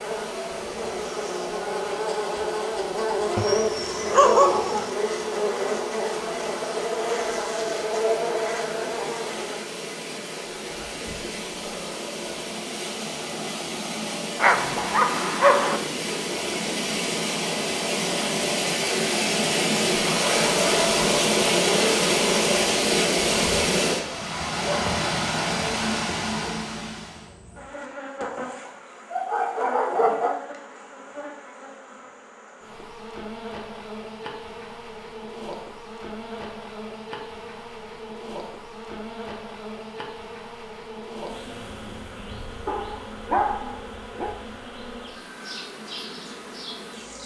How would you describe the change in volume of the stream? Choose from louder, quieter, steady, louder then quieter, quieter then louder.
louder.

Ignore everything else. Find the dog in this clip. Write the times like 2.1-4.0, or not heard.
3.4-4.9, 14.3-15.8, 28.6-30.4, 42.6-44.3.